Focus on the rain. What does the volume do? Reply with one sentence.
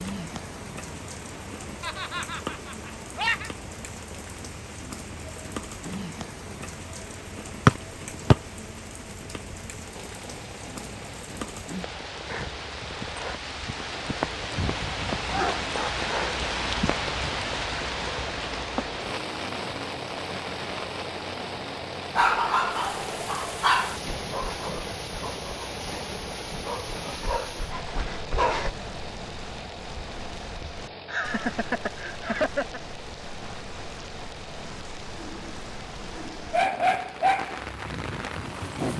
The loudness of the rain goes up, then down.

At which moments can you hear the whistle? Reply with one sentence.
You can hear the whistle from 7.7 to 8.3 s.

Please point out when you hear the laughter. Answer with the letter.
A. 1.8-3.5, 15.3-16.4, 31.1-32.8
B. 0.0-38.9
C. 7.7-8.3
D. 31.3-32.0
A.